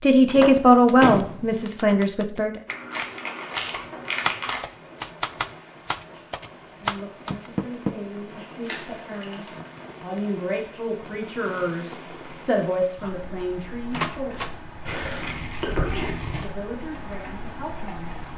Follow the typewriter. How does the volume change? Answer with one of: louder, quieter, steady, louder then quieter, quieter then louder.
louder.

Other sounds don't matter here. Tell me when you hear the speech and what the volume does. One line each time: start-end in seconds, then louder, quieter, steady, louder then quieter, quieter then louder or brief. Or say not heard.
0.0-2.6 brief
6.7-14.6 louder
15.8-18.2 brief.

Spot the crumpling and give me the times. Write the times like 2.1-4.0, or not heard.
2.6-4.6, 8.7-9.5, 14.8-16.5.